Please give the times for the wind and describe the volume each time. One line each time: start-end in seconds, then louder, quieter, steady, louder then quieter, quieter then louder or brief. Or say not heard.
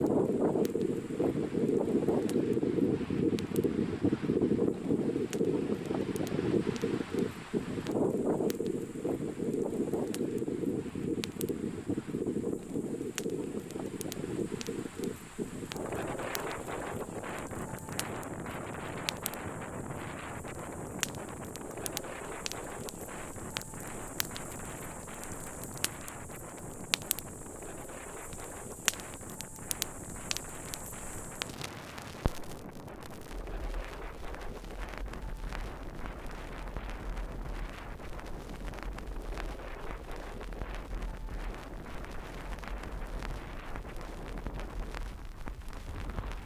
0.0-46.4 quieter.